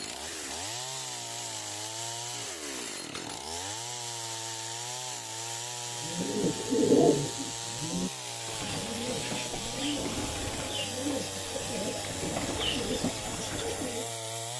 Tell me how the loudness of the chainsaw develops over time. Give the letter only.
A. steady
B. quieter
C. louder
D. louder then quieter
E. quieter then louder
A.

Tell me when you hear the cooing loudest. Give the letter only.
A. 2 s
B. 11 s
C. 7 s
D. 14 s
C.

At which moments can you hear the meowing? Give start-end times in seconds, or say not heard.
not heard.